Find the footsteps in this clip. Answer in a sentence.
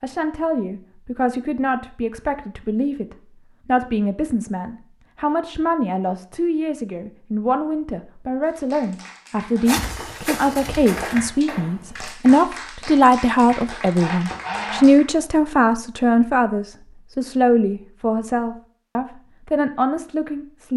The footsteps can be heard from 9.7 to 12.2 s.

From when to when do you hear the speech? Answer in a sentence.
The speech can be heard from 0.0 to 20.7 s.